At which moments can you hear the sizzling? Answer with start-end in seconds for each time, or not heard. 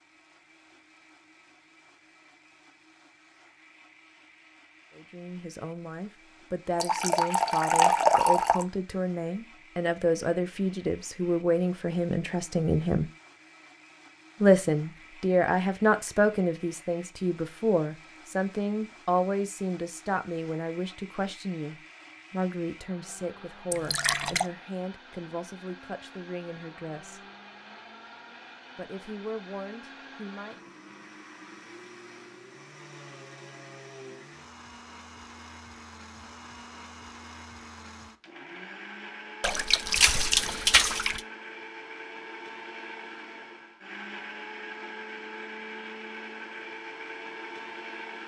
not heard.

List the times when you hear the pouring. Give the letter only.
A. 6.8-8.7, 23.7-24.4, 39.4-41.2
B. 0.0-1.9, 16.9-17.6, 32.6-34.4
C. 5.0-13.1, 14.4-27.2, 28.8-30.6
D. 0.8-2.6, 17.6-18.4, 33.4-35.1
A.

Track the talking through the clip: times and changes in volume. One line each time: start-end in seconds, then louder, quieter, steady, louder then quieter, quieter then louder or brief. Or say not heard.
5.0-13.1 louder
14.4-27.2 quieter
28.8-30.6 brief.